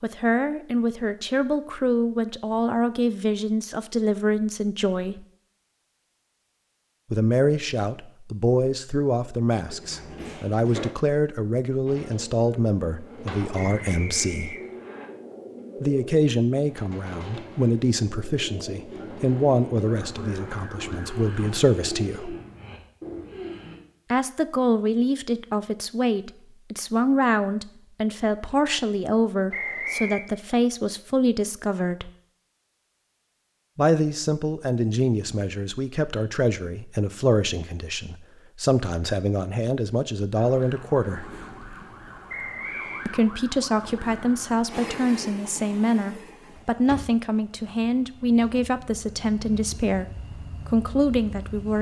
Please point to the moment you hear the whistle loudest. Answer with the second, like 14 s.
30 s.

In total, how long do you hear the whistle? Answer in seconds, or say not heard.
3 s.